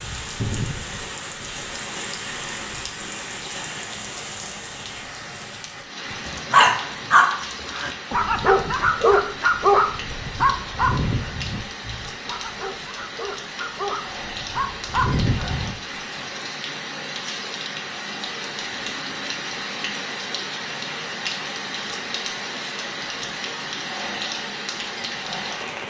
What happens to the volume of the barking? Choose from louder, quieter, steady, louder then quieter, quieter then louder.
quieter then louder.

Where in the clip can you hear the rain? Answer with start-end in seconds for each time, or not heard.
0.0-25.8.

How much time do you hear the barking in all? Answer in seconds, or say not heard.
10 s.